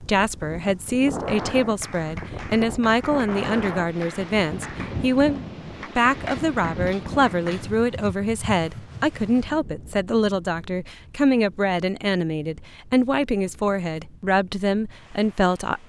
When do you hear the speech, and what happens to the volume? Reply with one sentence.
You can hear the speech from 0.0 to 15.8 s, at a steady volume.